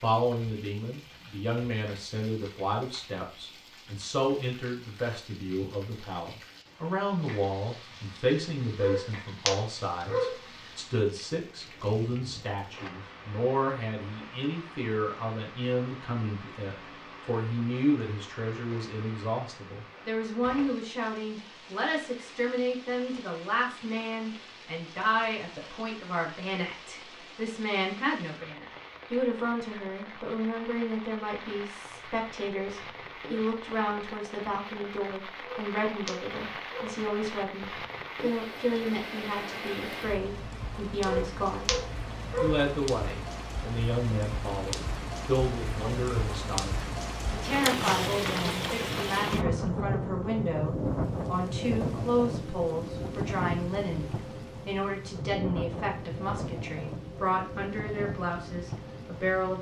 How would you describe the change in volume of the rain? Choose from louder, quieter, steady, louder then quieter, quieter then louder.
louder.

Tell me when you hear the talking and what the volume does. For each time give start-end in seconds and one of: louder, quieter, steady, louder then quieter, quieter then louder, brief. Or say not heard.
0.0-41.8 steady
42.4-59.5 steady.